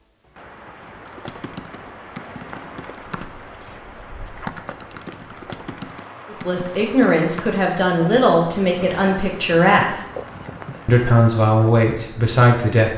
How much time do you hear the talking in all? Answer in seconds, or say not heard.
6 s.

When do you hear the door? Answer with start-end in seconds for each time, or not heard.
not heard.